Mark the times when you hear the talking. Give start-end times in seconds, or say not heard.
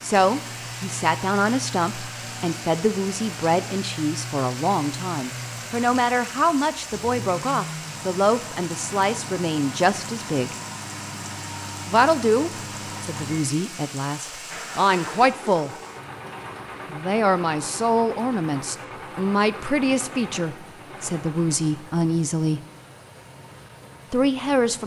0.0-10.6, 11.8-15.7, 16.9-22.6, 24.1-24.8.